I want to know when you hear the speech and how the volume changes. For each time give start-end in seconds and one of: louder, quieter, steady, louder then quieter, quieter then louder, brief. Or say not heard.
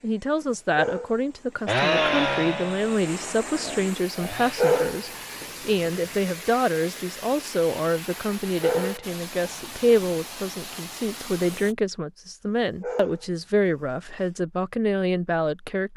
0.0-15.9 steady.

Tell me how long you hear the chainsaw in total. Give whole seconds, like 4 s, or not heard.
3 s.